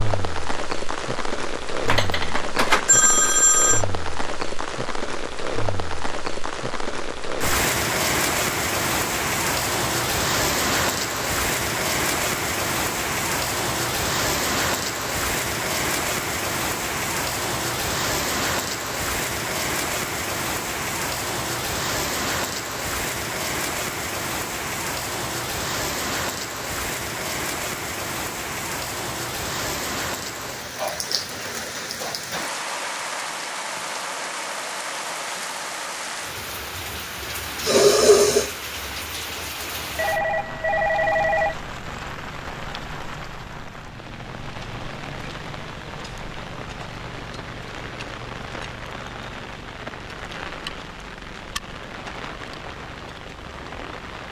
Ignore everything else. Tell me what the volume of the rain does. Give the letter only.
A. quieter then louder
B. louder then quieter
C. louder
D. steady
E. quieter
E.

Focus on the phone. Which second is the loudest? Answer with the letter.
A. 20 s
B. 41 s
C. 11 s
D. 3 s
D.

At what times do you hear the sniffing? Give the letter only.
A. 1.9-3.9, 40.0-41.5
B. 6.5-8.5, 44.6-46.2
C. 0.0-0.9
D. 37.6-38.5
D.